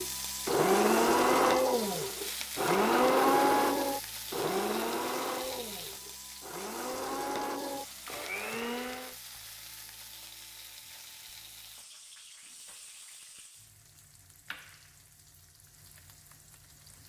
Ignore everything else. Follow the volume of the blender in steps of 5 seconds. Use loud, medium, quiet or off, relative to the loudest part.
loud, medium, off, off.